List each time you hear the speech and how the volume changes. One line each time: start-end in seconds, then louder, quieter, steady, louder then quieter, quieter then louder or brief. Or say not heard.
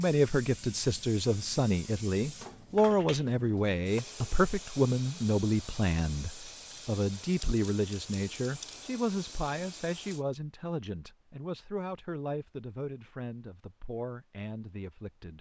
0.0-15.3 quieter.